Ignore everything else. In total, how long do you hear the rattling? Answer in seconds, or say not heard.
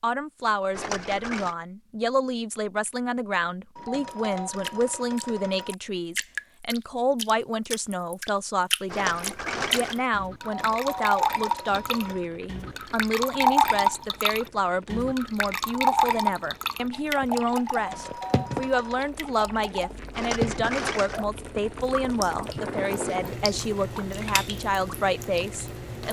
3 s.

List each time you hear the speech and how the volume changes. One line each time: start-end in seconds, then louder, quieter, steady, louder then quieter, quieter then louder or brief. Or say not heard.
0.0-26.0 steady.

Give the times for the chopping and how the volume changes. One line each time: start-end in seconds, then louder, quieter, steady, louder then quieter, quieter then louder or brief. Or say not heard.
not heard.